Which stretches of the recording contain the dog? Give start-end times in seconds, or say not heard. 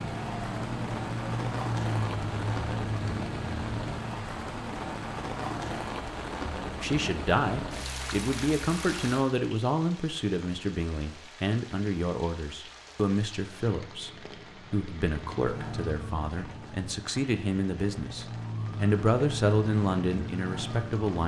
not heard.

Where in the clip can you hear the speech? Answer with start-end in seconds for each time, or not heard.
6.8-21.2.